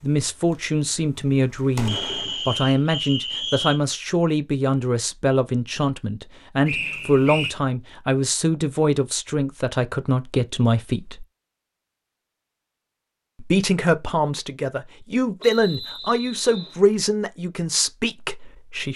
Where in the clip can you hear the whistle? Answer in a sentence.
You can hear the whistle from 1.9 to 3.8 s, from 6.7 to 7.5 s and from 15.4 to 16.8 s.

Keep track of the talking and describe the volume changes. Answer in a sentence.
The volume of the talking stays about the same.